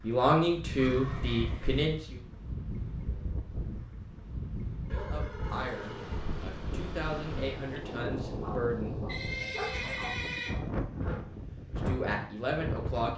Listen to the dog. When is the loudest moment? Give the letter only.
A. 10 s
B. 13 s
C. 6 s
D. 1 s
A.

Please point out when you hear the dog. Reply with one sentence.
The dog can be heard from 8.4 to 11.2 s.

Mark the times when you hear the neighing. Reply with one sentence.
You can hear the neighing from 0.8 to 1.9 s, from 4.9 to 6.4 s and from 9.1 to 10.6 s.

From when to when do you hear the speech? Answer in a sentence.
The speech can be heard from 0.0 to 2.2 s, from 4.9 to 9.5 s and from 11.7 to 13.1 s.